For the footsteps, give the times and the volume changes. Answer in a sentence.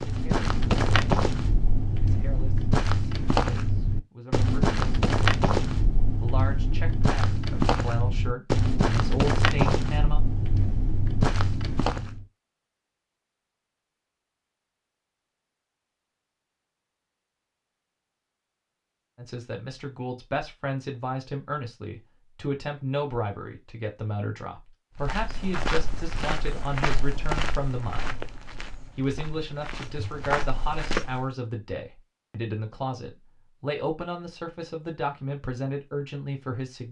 The footsteps can be heard from 0.0 to 12.2 s, at a steady volume; and from 25.0 to 31.2 s, getting quieter then louder.